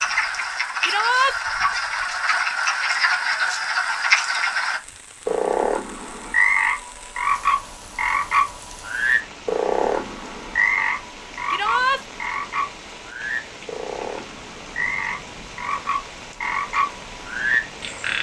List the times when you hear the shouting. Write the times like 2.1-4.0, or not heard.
0.8-1.4, 11.5-12.0.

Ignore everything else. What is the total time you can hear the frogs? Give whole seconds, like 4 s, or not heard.
18 s.